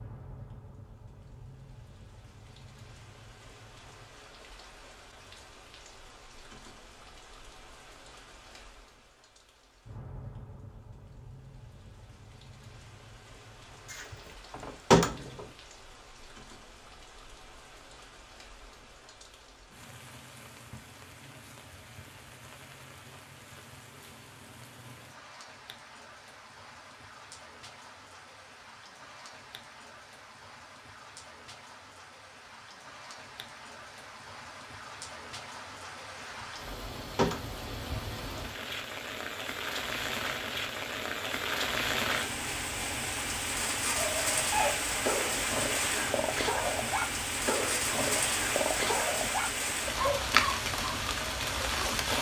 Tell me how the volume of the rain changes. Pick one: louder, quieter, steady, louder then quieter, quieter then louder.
louder.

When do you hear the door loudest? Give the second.
15 s.